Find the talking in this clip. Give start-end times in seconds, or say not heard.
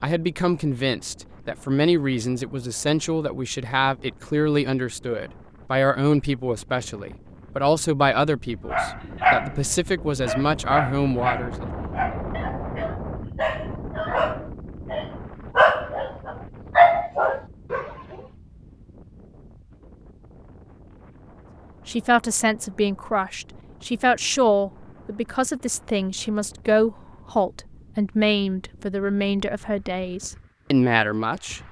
0.0-11.7, 21.9-31.6.